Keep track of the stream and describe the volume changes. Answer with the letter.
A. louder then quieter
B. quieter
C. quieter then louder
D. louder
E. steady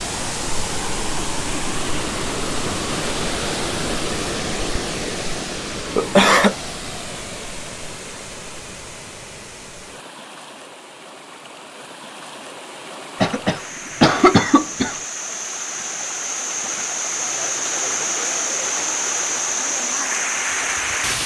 C.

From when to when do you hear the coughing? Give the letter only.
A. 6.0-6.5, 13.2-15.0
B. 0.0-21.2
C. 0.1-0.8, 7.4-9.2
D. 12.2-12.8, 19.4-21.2
A.